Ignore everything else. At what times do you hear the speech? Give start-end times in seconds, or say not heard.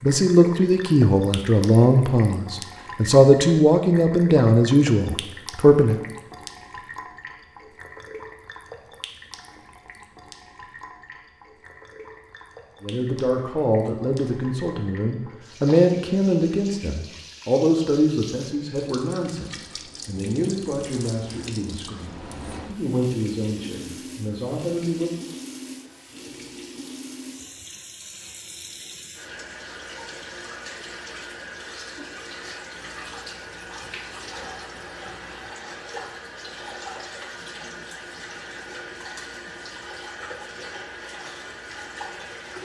0.0-6.0, 12.8-25.1.